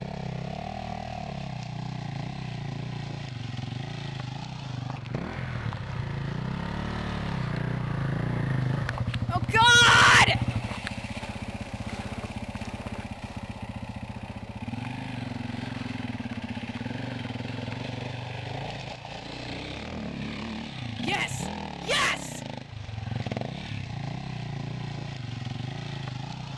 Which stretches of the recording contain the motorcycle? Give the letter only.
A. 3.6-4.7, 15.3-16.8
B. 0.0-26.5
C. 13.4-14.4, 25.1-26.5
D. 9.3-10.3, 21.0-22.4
B.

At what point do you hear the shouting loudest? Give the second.
10 s.